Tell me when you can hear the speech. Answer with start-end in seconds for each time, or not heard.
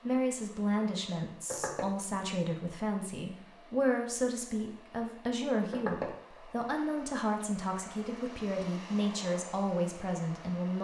0.0-10.8.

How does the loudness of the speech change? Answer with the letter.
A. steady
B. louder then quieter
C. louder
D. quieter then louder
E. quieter
A.